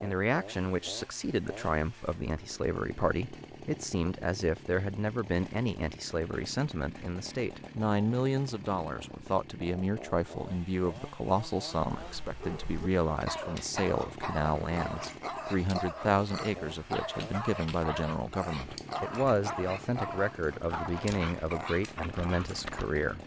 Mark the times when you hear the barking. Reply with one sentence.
You can hear the barking from 11.8 to 22.9 s.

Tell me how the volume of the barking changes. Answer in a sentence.
The loudness of the barking stays about the same.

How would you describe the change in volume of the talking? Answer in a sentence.
The volume of the talking stays about the same.